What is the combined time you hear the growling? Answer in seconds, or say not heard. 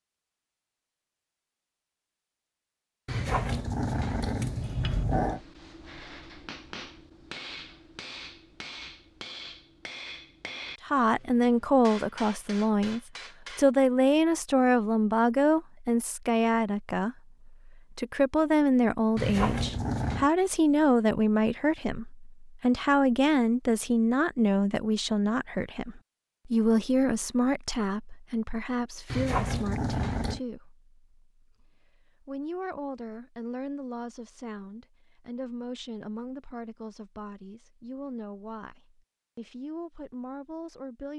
5 s.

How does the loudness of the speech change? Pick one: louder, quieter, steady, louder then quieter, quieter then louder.
quieter.